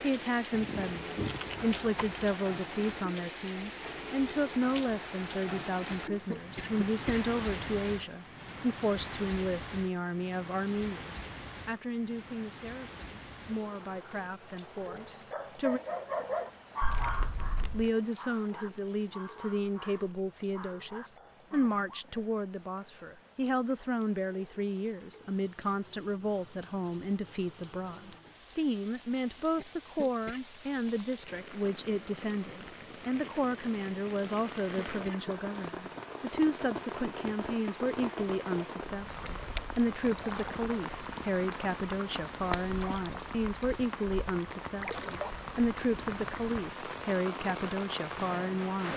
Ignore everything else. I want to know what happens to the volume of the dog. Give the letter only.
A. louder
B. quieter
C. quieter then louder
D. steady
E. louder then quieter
B.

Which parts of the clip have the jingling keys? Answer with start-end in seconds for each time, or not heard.
0.5-2.4, 16.8-17.9, 42.5-43.8.